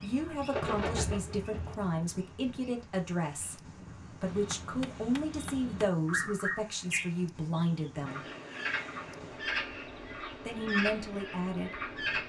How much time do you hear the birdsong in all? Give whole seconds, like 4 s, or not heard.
12 s.